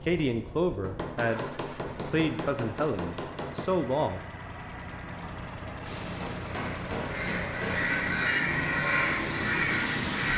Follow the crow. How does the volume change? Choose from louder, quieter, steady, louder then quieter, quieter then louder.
louder.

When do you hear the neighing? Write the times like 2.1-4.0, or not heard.
not heard.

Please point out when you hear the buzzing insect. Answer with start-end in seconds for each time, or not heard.
not heard.